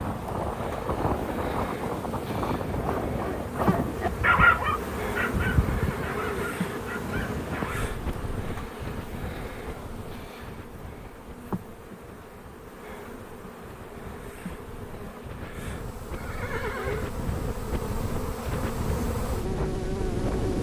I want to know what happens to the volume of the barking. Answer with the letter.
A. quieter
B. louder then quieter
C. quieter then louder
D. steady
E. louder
B.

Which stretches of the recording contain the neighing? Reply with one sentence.
You can hear the neighing from 5.7 to 6.8 s and from 16.1 to 17.1 s.